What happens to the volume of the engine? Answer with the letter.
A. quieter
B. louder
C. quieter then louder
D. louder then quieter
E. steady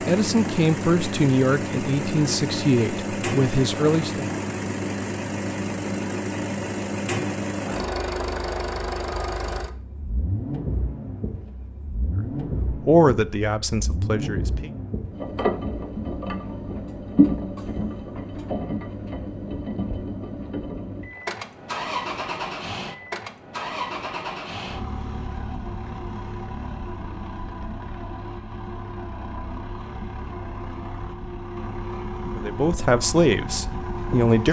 A.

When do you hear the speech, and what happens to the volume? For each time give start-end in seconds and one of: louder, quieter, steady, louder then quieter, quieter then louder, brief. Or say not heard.
0.0-4.3 steady
12.7-14.7 brief
32.4-34.4 brief.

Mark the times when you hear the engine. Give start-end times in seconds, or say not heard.
0.0-34.4.